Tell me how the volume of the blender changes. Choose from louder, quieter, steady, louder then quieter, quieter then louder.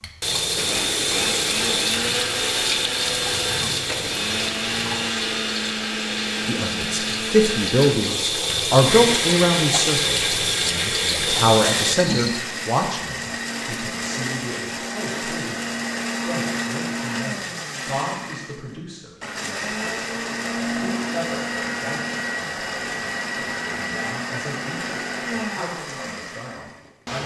steady.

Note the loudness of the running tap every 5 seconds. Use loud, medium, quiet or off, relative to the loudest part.
loud, loud, loud, off, off, off.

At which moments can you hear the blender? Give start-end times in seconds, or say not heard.
0.0-27.2.